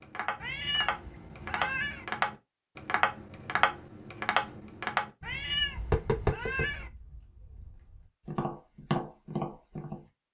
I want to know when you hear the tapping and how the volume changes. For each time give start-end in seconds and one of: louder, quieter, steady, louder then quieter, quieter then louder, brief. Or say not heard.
0.0-10.0 steady.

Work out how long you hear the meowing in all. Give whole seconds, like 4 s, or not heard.
3 s.